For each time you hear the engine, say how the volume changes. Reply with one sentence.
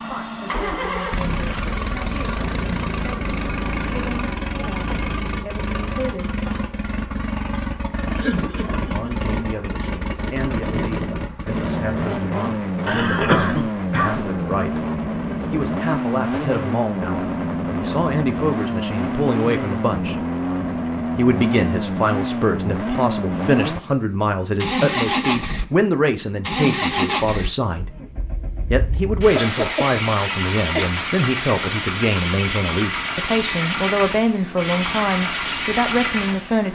You can hear the engine from 0.0 to 36.7 s, at a steady volume.